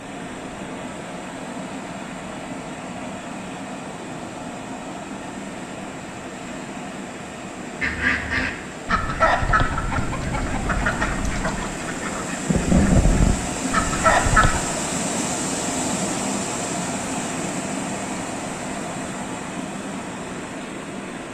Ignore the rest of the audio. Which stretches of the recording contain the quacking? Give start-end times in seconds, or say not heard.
7.8-14.6.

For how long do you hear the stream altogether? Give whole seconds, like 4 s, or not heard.
21 s.